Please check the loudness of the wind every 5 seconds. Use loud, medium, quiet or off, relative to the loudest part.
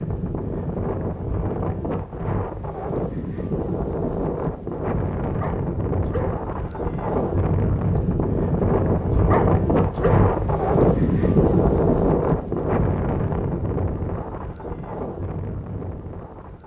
medium, loud, loud, quiet.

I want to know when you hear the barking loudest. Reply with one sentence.
The loudest moment of the barking is at 9 seconds.